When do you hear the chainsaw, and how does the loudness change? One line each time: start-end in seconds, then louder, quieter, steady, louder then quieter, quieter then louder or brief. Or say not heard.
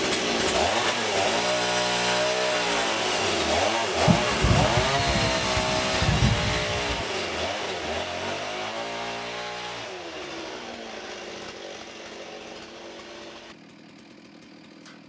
0.0-15.0 quieter.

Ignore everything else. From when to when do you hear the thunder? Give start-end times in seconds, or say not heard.
4.0-7.0.